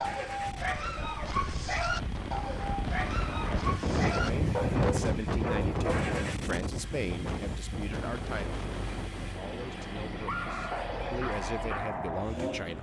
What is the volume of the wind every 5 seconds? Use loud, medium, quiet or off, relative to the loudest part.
loud, loud, quiet.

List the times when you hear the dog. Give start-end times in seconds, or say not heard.
0.0-6.2, 9.2-12.7.